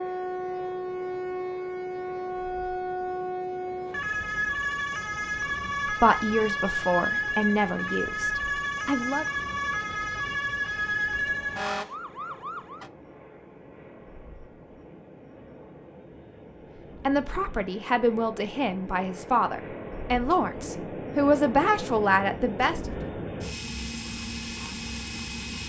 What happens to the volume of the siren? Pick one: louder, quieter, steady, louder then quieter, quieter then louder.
steady.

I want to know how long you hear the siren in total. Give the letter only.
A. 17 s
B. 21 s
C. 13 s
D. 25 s
C.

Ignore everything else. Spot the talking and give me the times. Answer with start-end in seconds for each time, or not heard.
5.8-9.2, 17.1-22.9.